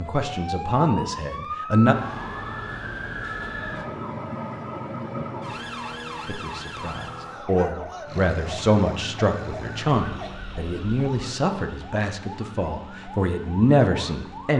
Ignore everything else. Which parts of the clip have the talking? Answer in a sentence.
You can hear the talking from 0.0 to 1.9 s and from 6.2 to 14.5 s.